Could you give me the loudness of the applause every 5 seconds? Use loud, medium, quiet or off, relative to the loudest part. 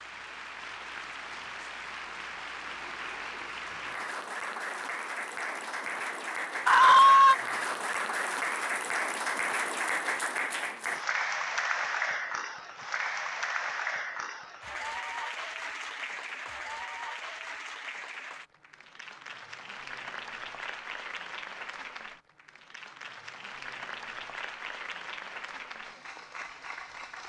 medium, loud, loud, medium, medium, medium.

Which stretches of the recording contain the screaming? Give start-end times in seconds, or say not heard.
6.7-7.3.